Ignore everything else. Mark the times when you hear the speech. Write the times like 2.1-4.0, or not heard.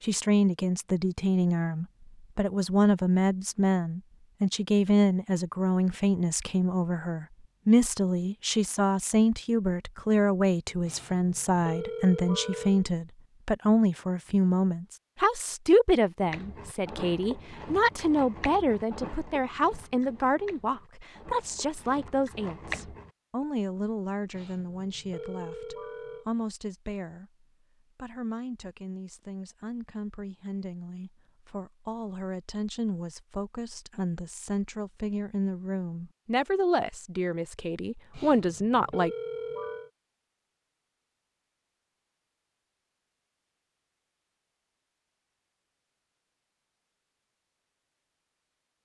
0.0-39.1.